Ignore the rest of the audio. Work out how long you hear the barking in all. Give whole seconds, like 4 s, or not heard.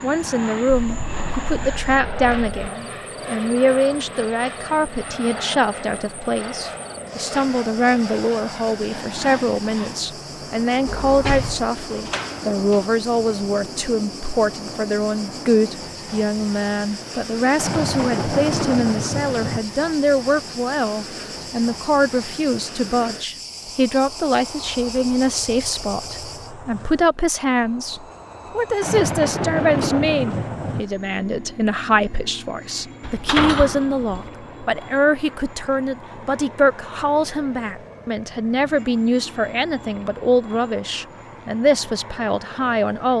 not heard.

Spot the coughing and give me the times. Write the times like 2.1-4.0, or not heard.
not heard.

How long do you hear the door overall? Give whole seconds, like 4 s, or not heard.
3 s.